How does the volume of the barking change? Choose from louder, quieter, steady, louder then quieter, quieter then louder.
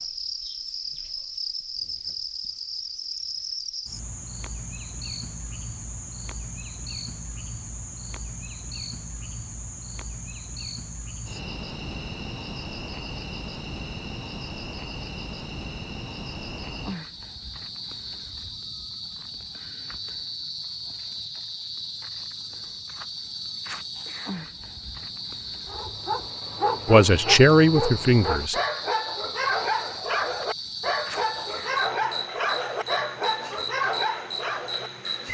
steady.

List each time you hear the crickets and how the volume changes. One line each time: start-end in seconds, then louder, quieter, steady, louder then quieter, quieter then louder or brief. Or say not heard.
0.0-35.2 steady.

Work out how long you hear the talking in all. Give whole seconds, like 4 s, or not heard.
2 s.